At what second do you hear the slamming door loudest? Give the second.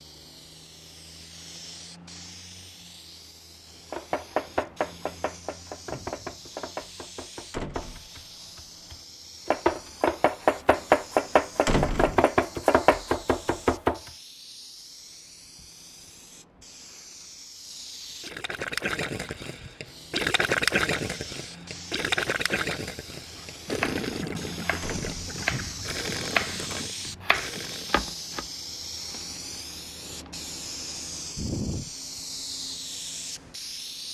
12 s.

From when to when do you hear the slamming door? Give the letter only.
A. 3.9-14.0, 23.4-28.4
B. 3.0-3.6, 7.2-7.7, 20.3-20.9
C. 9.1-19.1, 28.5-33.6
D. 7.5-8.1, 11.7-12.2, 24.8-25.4
D.